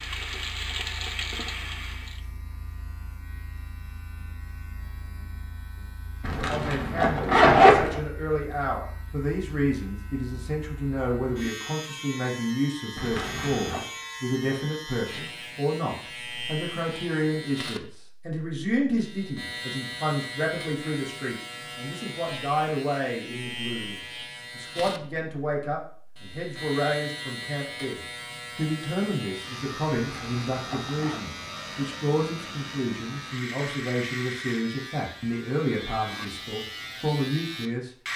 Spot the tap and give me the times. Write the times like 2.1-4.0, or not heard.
0.0-2.2.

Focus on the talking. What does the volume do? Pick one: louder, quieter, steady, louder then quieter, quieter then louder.
steady.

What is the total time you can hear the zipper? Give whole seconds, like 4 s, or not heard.
4 s.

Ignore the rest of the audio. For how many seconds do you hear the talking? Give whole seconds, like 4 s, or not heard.
32 s.